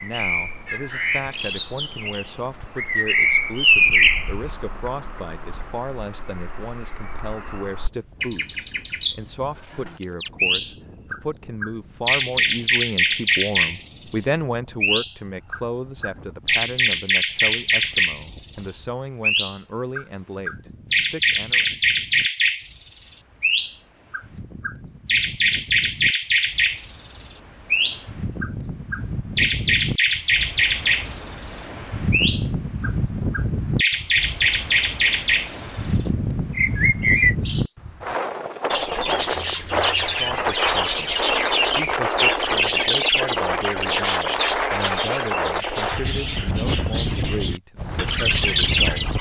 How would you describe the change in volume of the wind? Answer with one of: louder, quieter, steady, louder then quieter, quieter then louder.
louder.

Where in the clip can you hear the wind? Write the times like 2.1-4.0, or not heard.
7.7-49.1.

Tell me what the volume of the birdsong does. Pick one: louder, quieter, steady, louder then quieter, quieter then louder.
steady.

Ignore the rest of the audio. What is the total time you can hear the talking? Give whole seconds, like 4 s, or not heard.
31 s.